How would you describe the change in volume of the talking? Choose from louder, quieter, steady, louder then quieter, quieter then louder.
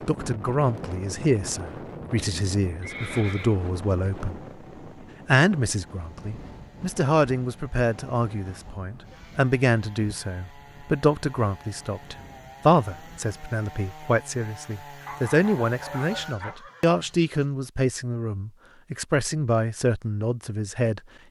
steady.